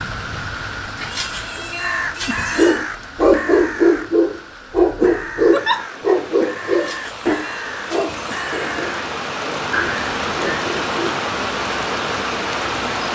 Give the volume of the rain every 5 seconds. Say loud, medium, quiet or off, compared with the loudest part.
medium, medium, loud.